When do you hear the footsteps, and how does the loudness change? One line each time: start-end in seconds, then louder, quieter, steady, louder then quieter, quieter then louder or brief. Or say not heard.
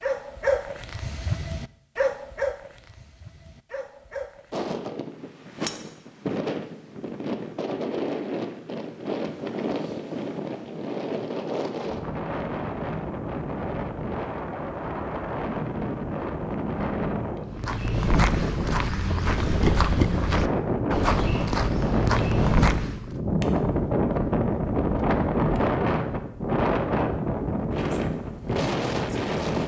17.5-23.1 steady.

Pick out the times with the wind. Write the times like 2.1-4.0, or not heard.
4.5-29.6.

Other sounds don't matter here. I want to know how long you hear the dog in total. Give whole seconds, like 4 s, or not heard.
5 s.